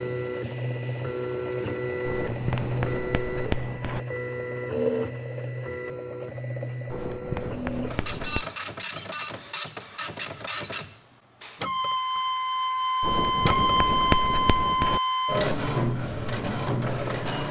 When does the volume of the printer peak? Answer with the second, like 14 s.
14 s.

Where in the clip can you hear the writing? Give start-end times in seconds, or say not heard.
2.0-4.0, 6.8-8.4, 13.0-15.0.